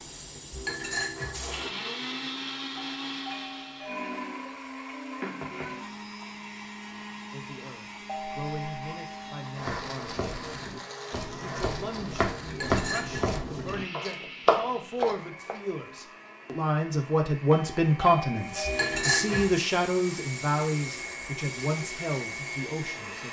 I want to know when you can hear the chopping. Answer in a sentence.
You can hear the chopping from 9.6 to 15.6 s.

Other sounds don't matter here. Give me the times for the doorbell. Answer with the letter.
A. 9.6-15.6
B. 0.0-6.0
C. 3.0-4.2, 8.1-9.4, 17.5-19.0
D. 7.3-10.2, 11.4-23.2
C.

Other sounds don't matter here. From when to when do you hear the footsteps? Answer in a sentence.
You can't hear the footsteps here.